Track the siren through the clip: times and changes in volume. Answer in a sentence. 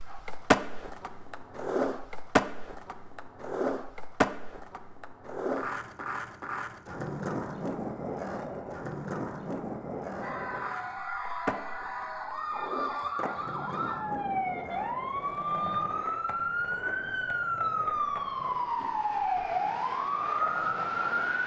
The siren can be heard from 10.2 to 21.4 s, getting louder.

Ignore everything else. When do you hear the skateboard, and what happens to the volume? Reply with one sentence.
You can hear the skateboard from 0.0 to 21.4 s, getting quieter.